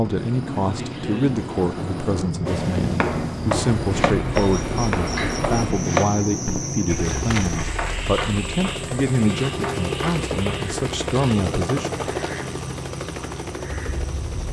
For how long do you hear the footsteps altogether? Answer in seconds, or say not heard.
6 s.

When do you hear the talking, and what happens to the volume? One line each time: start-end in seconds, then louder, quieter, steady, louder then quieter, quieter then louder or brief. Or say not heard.
0.0-12.1 steady.